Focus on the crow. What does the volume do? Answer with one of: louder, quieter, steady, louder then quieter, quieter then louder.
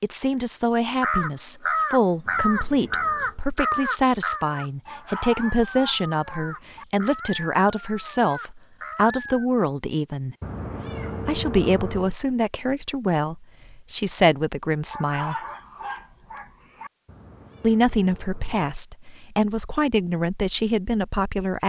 quieter.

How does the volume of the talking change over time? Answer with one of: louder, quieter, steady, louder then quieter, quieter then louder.
steady.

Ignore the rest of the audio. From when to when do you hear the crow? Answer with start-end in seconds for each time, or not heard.
1.0-9.4.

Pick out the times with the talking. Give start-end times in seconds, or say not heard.
0.0-10.3, 11.2-15.3, 17.6-21.6.